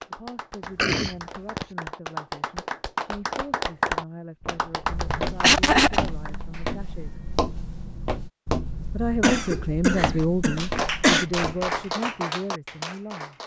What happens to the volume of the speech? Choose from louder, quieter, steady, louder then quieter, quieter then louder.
louder then quieter.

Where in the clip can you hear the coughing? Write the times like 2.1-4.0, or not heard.
0.8-1.6, 5.3-6.0, 9.2-11.2.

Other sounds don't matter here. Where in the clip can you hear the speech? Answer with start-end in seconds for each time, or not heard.
0.1-7.2, 8.9-13.3.